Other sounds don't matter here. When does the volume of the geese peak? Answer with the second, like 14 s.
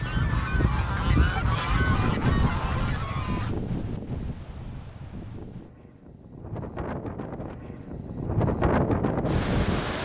2 s.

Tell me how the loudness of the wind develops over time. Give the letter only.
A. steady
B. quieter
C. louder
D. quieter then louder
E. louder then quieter
D.